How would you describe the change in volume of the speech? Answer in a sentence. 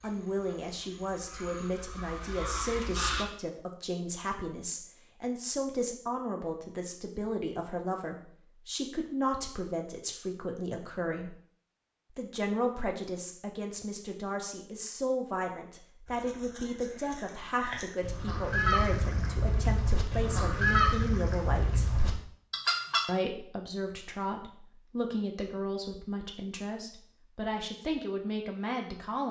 The loudness of the speech stays about the same.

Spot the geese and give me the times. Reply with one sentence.
You can hear the geese from 0.0 to 3.2 s and from 16.1 to 23.0 s.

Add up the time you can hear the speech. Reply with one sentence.
The speech can be heard for 27 seconds in total.